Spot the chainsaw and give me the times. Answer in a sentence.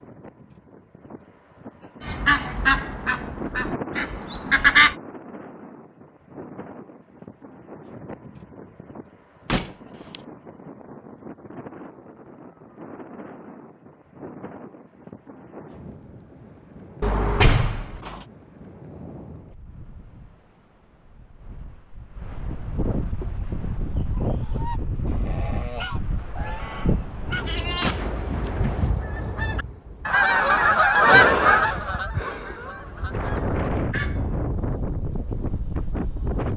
The chainsaw can't be heard in this clip.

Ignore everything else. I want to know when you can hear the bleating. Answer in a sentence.
The bleating can be heard from 27.4 to 28.9 s.